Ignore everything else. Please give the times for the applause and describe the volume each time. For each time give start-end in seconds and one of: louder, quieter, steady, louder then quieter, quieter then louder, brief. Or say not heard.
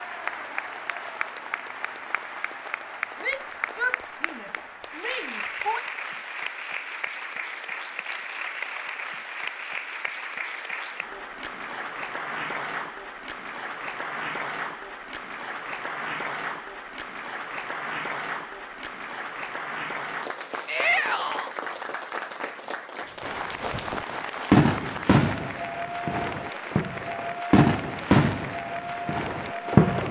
0.0-30.0 steady.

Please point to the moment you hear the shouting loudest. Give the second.
21 s.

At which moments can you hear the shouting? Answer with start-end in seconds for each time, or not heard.
3.2-5.8, 20.6-21.5.